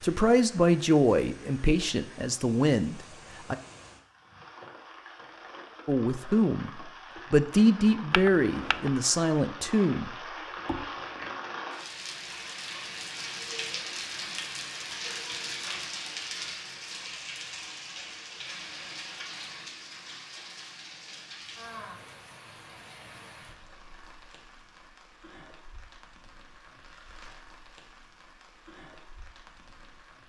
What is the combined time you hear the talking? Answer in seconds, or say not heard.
8 s.